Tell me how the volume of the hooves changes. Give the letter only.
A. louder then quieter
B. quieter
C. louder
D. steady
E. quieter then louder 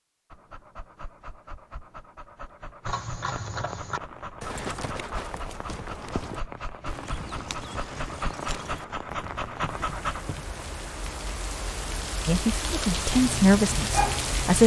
B.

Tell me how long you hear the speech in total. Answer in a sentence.
The speech can be heard for 2 seconds in total.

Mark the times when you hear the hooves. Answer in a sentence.
The hooves can be heard from 2.9 to 10.5 s.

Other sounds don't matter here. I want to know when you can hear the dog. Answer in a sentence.
The dog can be heard from 0.3 to 10.2 s and from 13.1 to 14.6 s.